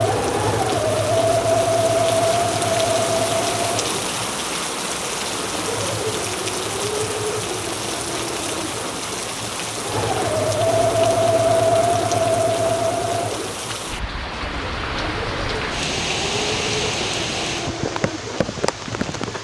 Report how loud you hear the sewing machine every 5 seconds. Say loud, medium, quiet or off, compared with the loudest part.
loud, medium, loud, quiet.